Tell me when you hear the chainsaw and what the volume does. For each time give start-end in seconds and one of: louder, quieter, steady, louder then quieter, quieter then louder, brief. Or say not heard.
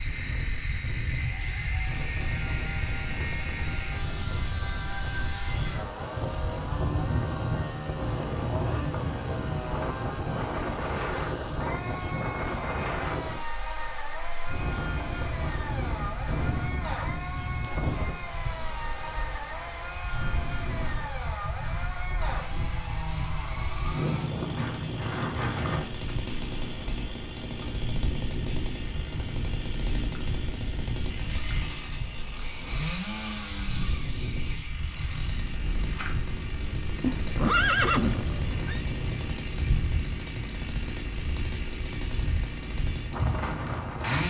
0.0-44.2 steady.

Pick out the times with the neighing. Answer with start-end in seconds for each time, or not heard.
37.0-38.9.